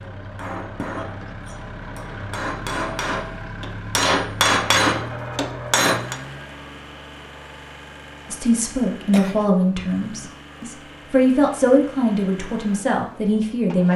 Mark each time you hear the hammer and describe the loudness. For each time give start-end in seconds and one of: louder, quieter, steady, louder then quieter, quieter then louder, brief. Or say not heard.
0.0-6.2 louder.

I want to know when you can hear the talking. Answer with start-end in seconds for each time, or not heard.
8.3-13.9.